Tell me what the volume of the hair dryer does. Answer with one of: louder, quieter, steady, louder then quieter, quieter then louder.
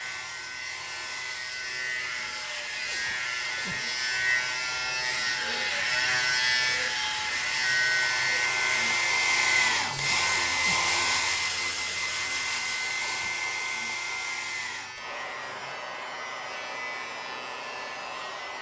louder then quieter.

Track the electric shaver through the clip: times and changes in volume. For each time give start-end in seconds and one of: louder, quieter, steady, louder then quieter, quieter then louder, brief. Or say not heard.
0.0-18.5 louder then quieter.